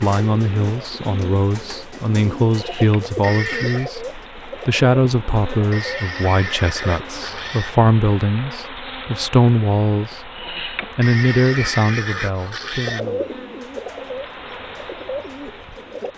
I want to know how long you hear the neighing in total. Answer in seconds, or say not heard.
5 s.